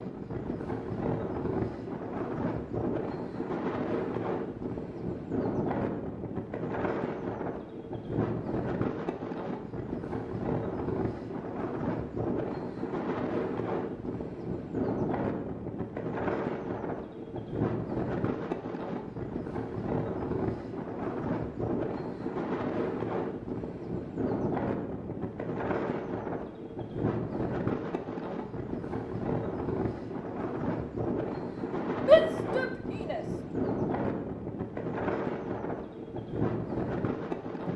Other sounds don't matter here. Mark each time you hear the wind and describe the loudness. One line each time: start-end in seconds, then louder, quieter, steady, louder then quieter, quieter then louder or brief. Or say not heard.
0.0-37.7 steady.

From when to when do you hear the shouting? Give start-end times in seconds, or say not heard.
32.0-33.2.